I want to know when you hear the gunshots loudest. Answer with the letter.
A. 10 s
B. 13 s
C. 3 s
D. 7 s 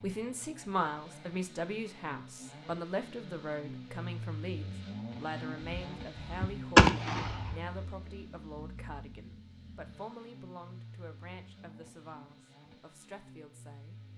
D.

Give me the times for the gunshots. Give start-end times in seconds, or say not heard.
5.7-7.5.